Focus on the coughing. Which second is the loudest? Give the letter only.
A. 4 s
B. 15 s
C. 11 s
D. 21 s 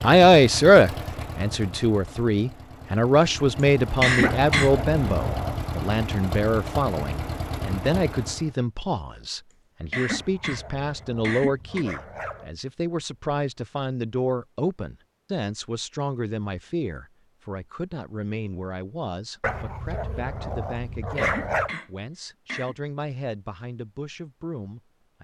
A.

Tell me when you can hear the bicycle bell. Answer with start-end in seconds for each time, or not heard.
not heard.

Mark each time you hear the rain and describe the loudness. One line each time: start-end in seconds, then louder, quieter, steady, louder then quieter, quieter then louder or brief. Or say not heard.
not heard.